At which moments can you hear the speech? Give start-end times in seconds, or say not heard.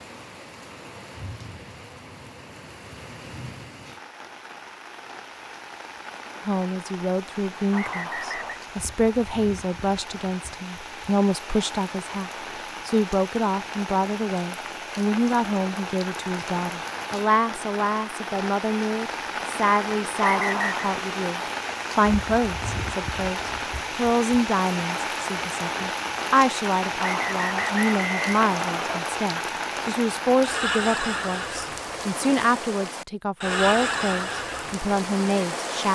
6.5-35.9.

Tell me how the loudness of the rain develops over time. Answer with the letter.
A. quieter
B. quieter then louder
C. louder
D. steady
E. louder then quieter
C.